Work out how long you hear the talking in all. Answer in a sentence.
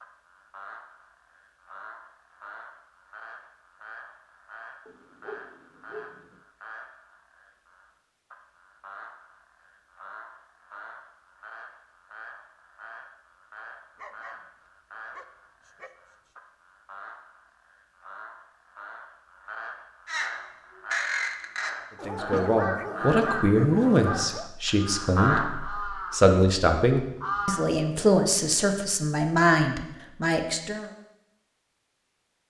The talking can be heard for 9 seconds in total.